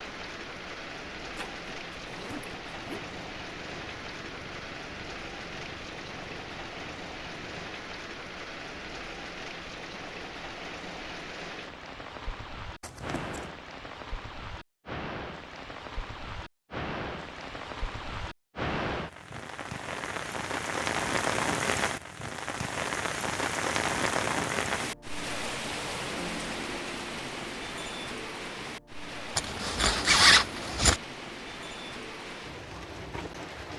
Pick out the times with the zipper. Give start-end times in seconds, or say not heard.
1.4-3.2, 12.8-13.5, 29.4-31.0.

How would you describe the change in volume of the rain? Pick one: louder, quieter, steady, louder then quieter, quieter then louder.
louder then quieter.